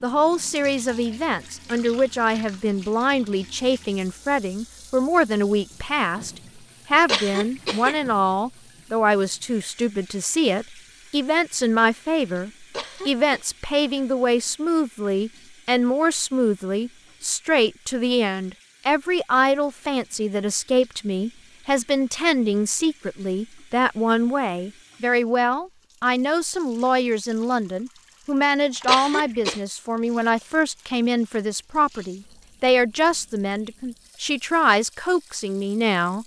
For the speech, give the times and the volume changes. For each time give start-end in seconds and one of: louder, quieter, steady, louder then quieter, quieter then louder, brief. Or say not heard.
0.0-36.2 steady.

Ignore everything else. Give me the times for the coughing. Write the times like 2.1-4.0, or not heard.
7.0-8.0, 12.7-13.4, 28.9-29.6.